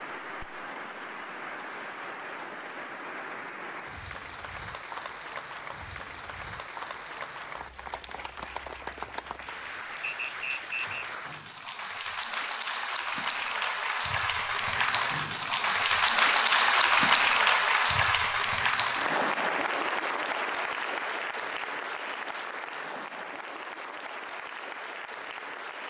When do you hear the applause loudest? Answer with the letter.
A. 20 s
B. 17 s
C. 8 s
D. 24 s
B.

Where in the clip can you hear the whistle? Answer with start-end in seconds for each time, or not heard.
10.0-11.1.